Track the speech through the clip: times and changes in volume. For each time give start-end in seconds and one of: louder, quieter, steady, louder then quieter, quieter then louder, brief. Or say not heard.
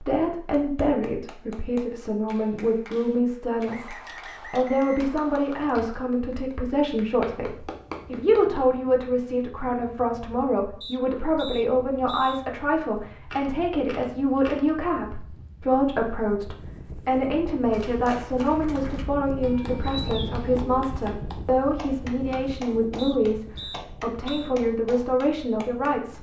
0.0-26.1 steady.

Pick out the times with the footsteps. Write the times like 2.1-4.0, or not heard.
not heard.